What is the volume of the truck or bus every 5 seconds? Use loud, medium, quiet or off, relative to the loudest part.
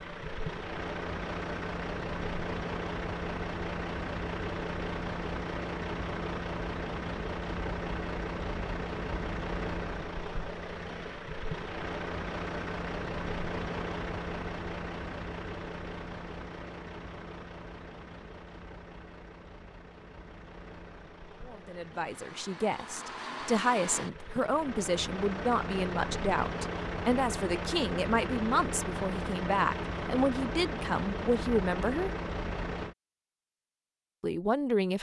loud, loud, loud, medium, medium, loud, loud.